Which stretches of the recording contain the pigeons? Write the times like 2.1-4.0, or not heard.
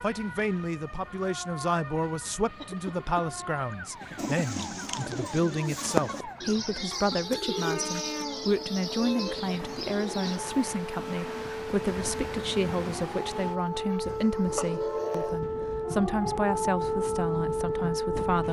4.2-10.4.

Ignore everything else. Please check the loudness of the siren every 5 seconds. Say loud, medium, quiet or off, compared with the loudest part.
quiet, quiet, medium, loud.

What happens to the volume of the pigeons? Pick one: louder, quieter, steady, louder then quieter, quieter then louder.
louder then quieter.